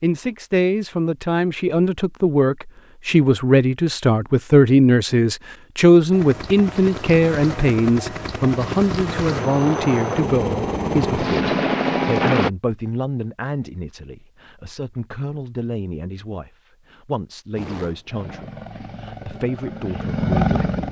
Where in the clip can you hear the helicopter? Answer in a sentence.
You can hear the helicopter from 6.1 to 12.5 s and from 17.6 to 20.8 s.